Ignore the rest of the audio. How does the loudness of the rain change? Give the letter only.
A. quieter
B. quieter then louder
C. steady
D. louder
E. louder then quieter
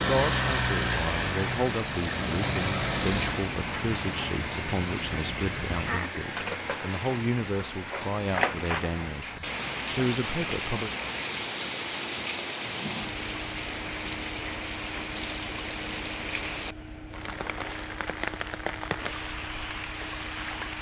C.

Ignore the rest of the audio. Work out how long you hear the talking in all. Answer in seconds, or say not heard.
11 s.